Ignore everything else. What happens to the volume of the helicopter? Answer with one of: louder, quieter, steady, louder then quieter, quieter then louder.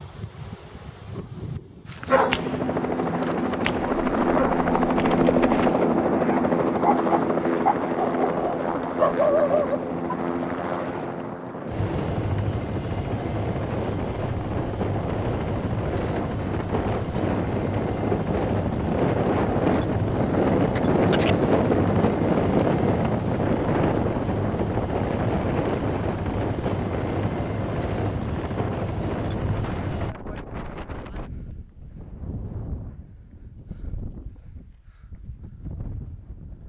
quieter.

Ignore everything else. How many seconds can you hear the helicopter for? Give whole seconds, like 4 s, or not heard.
28 s.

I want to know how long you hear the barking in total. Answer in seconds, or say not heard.
8 s.